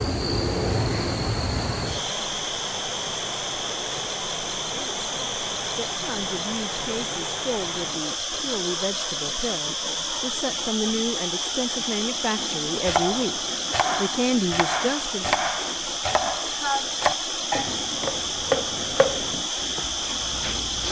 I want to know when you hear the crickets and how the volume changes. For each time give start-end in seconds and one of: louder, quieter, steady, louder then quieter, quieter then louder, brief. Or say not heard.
0.0-20.8 steady.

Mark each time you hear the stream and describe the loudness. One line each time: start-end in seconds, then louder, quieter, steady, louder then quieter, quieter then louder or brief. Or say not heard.
0.0-20.8 steady.